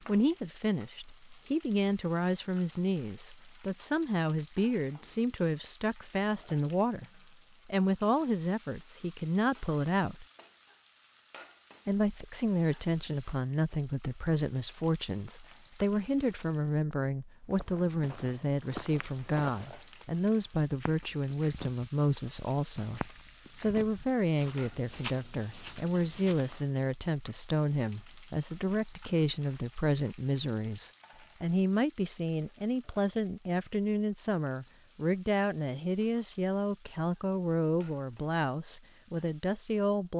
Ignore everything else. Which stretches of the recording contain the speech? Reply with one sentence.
The speech can be heard from 0.1 to 7.0 s, from 7.7 to 10.2 s and from 11.8 to 40.1 s.